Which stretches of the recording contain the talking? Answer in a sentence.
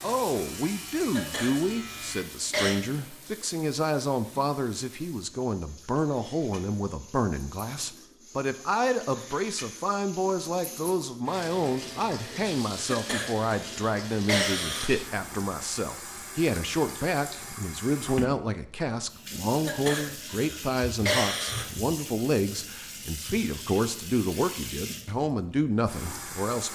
You can hear the talking from 0.0 to 26.6 s.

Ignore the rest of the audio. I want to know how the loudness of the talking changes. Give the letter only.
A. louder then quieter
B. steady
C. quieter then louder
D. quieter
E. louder
B.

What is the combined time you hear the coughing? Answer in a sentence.
You can hear the coughing for 6 seconds altogether.